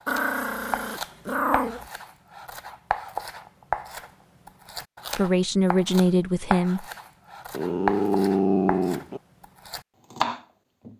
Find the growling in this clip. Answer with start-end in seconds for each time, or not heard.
0.1-1.9, 7.5-9.2.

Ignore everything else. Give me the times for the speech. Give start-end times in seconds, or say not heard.
5.2-6.8.